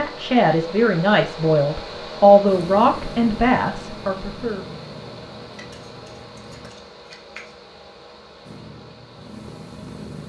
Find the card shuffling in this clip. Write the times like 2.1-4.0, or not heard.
5.5-7.5.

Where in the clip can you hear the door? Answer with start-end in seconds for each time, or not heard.
not heard.